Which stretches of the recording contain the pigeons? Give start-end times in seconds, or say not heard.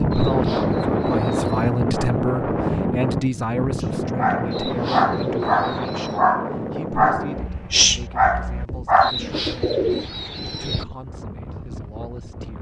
0.1-1.7, 4.5-6.2, 9.0-10.8.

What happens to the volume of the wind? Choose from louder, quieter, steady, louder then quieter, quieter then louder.
quieter.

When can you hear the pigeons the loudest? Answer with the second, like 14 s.
10 s.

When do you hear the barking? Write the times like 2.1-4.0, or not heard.
4.2-9.1.